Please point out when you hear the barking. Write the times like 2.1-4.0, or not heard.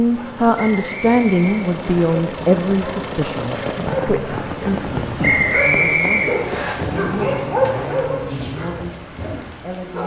0.0-10.0.